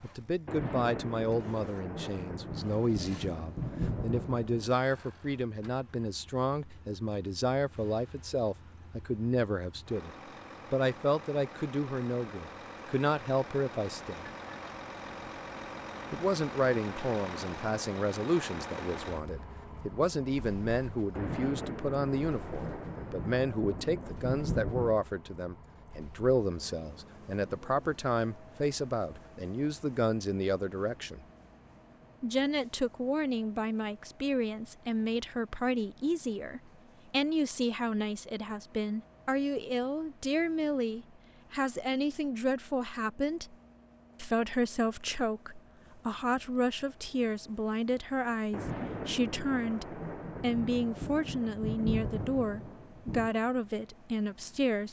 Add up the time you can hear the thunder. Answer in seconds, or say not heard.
13 s.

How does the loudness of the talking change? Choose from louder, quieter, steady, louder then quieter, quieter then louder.
steady.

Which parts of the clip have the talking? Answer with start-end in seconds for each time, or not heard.
0.0-10.1, 10.7-14.2, 16.1-31.2, 32.2-43.5, 44.2-54.8.